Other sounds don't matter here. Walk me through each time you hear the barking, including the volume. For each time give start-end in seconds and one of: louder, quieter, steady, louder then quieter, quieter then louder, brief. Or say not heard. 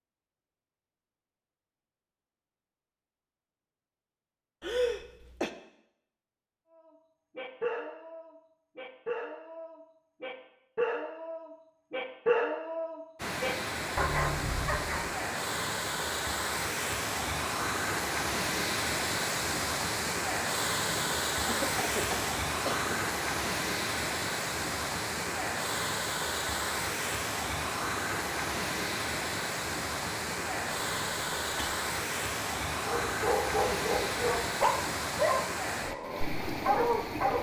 7.3-15.1 louder
32.9-37.3 quieter then louder.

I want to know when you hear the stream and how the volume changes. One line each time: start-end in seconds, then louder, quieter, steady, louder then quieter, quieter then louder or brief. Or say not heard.
13.2-37.3 steady.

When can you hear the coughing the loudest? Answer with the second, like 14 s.
5 s.